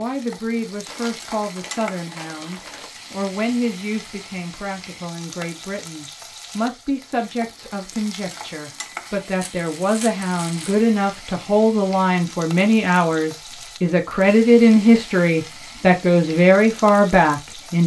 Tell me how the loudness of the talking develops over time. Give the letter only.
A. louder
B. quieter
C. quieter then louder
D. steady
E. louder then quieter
A.